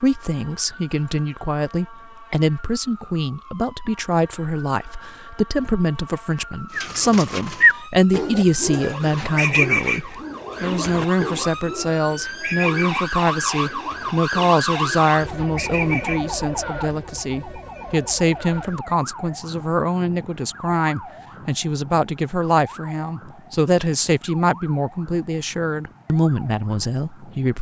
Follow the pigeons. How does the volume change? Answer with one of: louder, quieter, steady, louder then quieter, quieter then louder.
quieter.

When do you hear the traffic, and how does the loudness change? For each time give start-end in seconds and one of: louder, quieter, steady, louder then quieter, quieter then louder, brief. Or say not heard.
not heard.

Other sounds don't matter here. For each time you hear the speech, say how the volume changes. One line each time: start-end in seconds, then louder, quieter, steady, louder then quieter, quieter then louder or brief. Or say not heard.
0.0-27.5 steady.